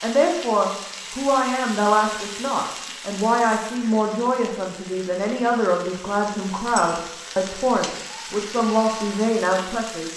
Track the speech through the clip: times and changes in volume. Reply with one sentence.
You can hear the speech from 0.0 to 10.1 s, at a steady volume.